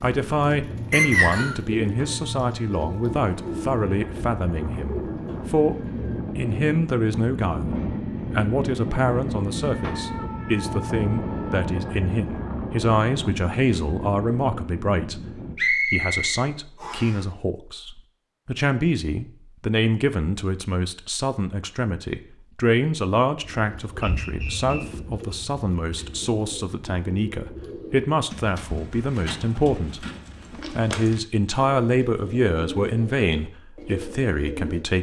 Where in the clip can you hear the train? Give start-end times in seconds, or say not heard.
0.1-15.6.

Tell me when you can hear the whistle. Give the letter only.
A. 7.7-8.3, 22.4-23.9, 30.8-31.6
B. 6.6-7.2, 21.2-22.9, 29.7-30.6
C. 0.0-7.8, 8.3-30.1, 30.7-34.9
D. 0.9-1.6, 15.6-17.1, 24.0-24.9
D.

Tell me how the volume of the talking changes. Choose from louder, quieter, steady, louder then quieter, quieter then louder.
steady.